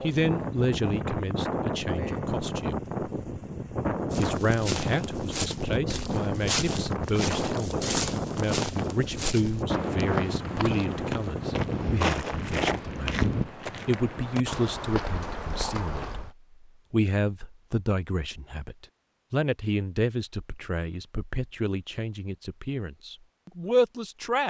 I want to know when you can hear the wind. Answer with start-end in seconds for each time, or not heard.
0.0-13.5.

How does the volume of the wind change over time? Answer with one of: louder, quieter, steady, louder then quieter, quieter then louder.
steady.